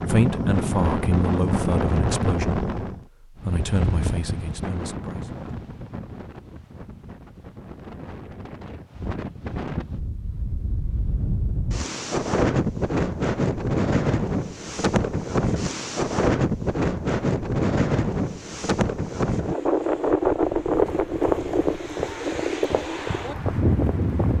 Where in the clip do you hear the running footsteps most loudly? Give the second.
21 s.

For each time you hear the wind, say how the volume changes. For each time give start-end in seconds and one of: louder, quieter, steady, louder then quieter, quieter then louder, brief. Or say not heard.
0.0-24.3 quieter then louder.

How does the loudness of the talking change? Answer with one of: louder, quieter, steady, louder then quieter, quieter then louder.
quieter.